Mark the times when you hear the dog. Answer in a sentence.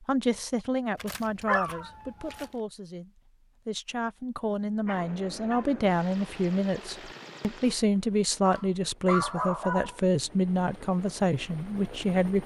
The dog can be heard from 0.9 to 2.5 s, from 4.7 to 5.8 s and from 8.4 to 10.0 s.